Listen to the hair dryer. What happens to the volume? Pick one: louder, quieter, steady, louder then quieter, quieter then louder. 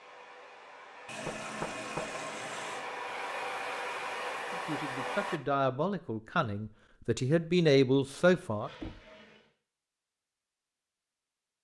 louder.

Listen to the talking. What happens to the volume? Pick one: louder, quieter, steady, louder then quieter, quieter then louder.
louder.